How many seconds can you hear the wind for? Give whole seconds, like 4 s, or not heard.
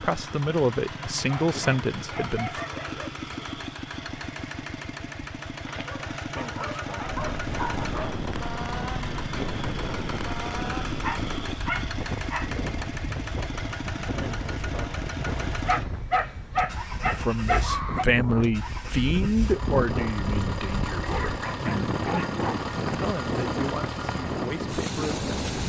19 s.